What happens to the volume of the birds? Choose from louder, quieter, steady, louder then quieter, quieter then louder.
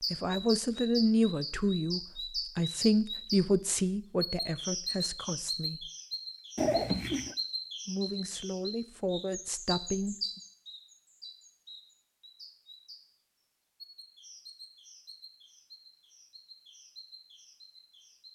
quieter.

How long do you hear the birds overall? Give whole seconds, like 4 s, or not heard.
17 s.